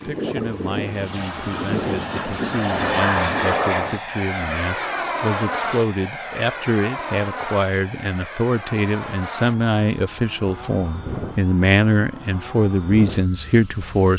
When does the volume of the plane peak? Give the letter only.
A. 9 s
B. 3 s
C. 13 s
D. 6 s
B.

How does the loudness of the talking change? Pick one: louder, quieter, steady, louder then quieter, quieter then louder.
louder.